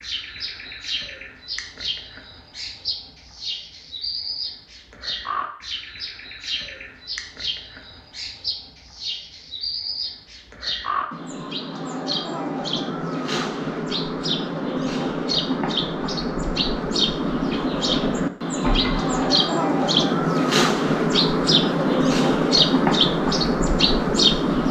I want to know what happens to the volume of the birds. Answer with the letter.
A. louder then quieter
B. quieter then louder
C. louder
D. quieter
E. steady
C.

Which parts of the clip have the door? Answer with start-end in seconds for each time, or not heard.
18.6-19.4.